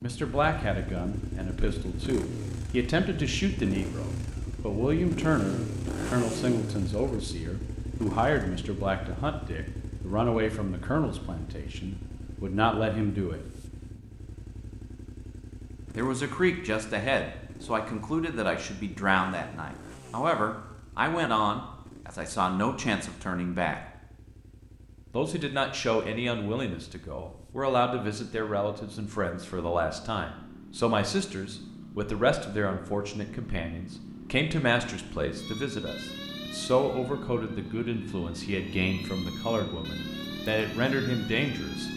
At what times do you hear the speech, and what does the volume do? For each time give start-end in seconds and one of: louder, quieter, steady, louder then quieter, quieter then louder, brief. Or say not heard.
0.0-13.4 steady
15.9-23.9 steady
25.1-41.9 steady.